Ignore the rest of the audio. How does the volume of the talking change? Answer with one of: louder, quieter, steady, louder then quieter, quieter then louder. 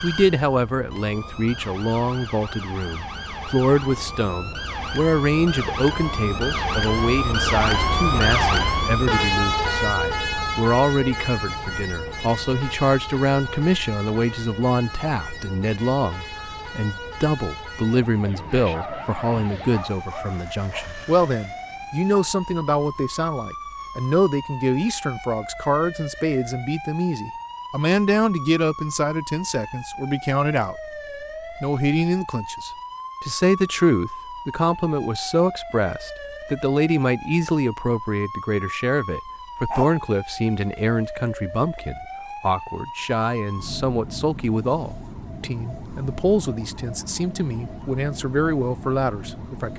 steady.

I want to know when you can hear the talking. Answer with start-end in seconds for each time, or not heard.
0.0-30.8, 31.6-49.7.